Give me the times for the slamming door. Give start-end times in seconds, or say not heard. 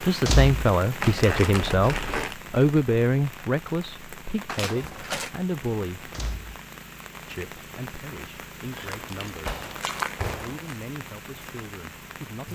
0.2-0.8, 6.1-6.6, 9.4-10.6.